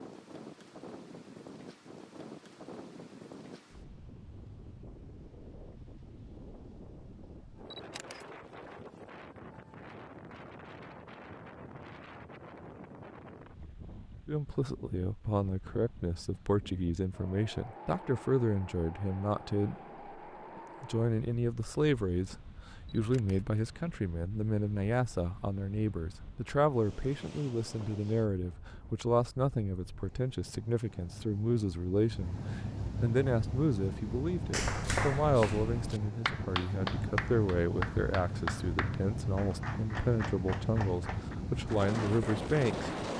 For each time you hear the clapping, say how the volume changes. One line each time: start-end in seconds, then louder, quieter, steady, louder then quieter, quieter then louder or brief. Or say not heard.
34.5-42.8 quieter.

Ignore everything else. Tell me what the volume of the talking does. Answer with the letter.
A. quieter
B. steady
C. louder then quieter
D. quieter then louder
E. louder
B.